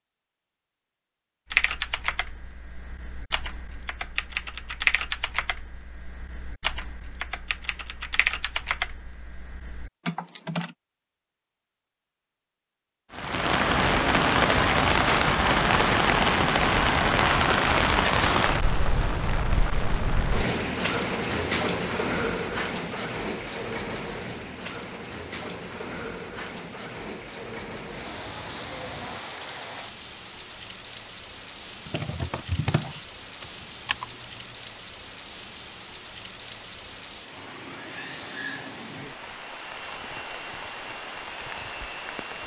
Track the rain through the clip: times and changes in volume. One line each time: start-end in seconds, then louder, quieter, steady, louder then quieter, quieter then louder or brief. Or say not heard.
13.1-42.4 quieter.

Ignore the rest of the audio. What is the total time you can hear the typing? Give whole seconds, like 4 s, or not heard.
12 s.